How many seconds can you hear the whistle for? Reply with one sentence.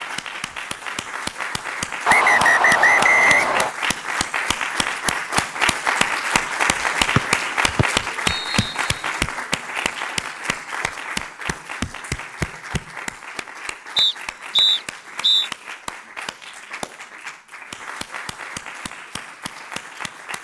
The whistle can be heard for 5 seconds in total.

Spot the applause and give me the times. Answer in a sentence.
You can hear the applause from 0.0 to 20.3 s.